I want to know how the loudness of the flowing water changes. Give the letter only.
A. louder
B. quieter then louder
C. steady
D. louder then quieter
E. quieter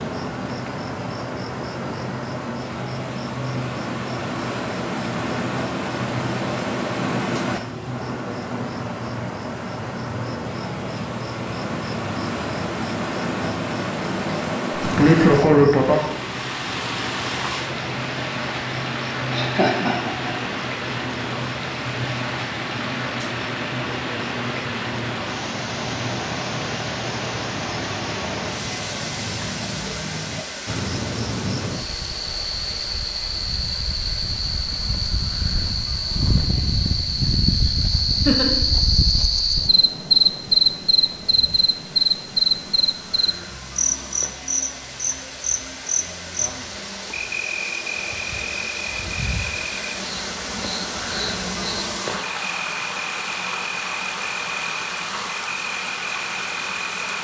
B.